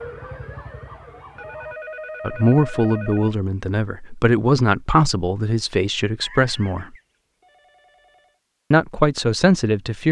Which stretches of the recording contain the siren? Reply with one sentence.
You can hear the siren from 0.0 to 1.8 s.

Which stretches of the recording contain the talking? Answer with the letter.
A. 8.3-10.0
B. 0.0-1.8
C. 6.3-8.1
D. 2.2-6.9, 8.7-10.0
D.